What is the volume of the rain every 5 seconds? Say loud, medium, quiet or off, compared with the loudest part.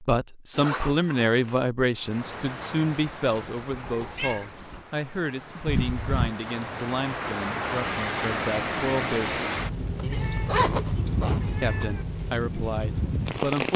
medium, loud, loud.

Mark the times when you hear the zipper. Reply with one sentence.
You can hear the zipper from 0.5 to 1.6 s, from 5.7 to 6.3 s and from 9.9 to 11.8 s.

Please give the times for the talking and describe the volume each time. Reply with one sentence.
The talking can be heard from 0.0 to 9.4 s, getting quieter; and briefly from 11.6 to 13.7 s.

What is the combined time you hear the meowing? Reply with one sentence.
You can hear the meowing for 4 seconds altogether.